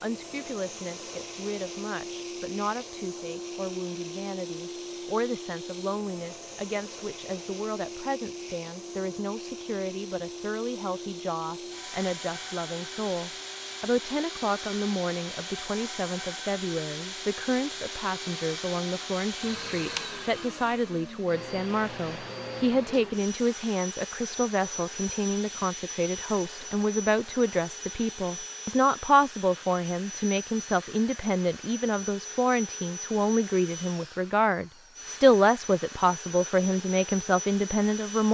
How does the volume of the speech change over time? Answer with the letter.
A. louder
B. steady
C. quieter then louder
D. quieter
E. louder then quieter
A.